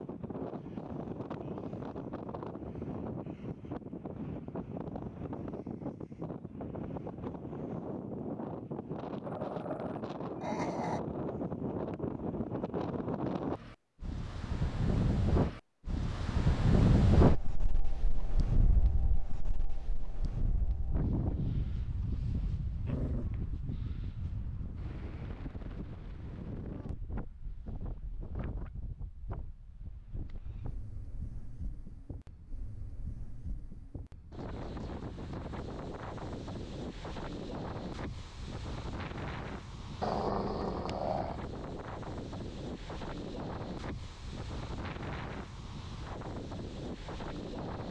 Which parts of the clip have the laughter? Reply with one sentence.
You can't hear the laughter here.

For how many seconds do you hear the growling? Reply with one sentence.
The growling can be heard for 4 seconds in total.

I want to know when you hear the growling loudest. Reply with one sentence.
The loudest moment of the growling is at 40 seconds.